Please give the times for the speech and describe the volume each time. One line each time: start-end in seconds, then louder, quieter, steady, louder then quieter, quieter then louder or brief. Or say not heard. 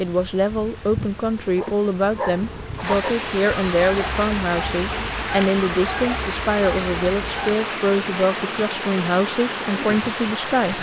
0.0-10.7 steady.